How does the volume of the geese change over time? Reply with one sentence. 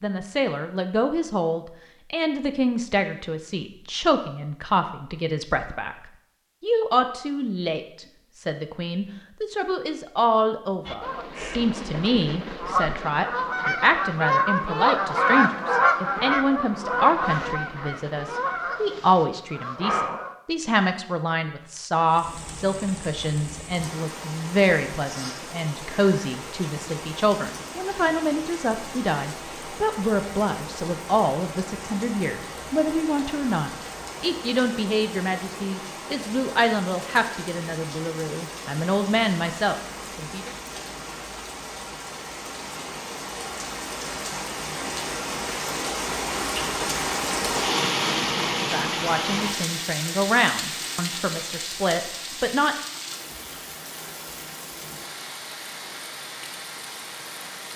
The volume of the geese goes up, then down.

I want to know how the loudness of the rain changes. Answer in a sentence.
The volume of the rain goes up, then down.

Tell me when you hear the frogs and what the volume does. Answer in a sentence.
You can't hear the frogs here.